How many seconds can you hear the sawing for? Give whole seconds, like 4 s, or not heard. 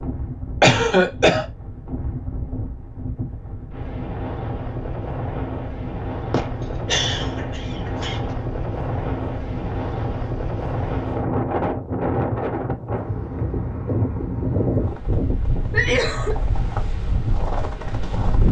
not heard.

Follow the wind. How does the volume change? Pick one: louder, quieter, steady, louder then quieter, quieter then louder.
louder.